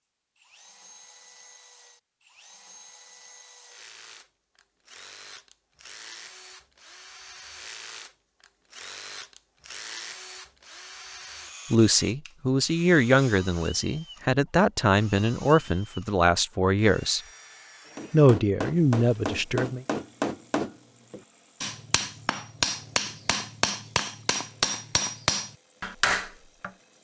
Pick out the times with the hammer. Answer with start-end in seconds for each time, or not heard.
17.9-26.7.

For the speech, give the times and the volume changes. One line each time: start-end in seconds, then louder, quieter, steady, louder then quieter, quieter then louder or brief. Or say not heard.
11.7-17.2 steady
18.1-19.9 brief.